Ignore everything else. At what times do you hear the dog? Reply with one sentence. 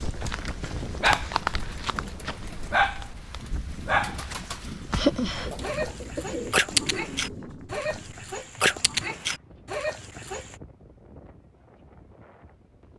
You can hear the dog from 0.0 to 10.6 s.